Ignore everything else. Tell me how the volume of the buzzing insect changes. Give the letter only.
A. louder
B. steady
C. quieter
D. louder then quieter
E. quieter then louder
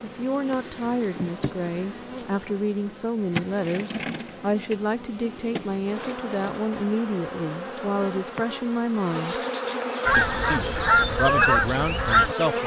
A.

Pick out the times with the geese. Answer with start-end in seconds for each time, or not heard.
10.1-12.6.